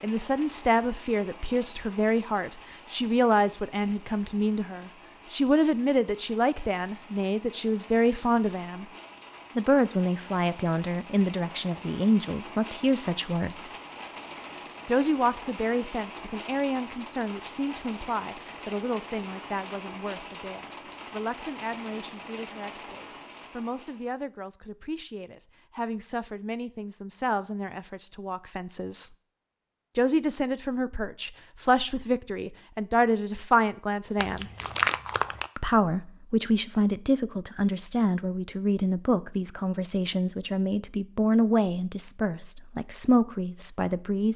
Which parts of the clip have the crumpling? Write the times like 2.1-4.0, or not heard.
34.1-35.5.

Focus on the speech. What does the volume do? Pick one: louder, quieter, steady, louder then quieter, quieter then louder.
quieter then louder.